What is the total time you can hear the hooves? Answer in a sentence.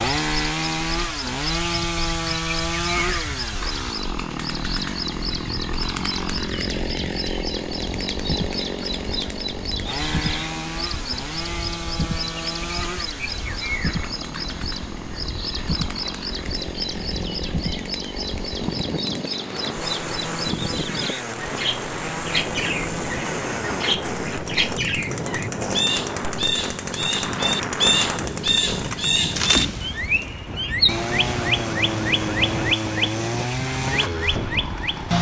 The hooves can't be heard in this clip.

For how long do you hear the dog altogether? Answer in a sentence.
You can't hear the dog here.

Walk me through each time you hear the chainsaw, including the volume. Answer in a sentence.
The chainsaw can be heard from 0.0 to 35.1 s, getting quieter then louder.